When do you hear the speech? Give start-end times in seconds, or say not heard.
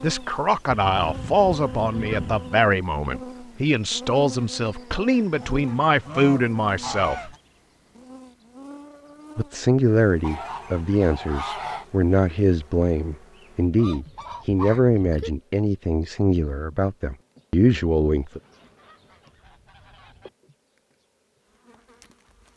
0.0-7.3, 9.3-18.4.